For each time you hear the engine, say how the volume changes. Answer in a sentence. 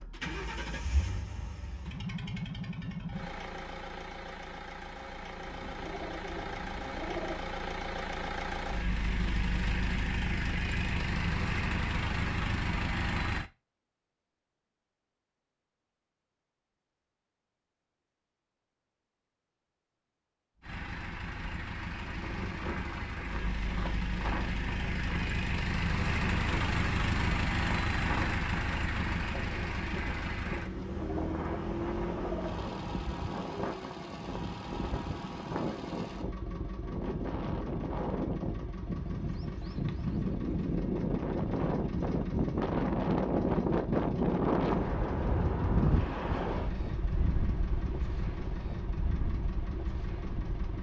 You can hear the engine from 0.0 to 13.5 s, getting louder; and from 20.6 to 50.7 s, getting quieter.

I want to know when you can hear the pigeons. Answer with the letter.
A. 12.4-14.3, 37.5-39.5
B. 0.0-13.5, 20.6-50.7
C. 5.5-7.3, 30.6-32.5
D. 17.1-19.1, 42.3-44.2
C.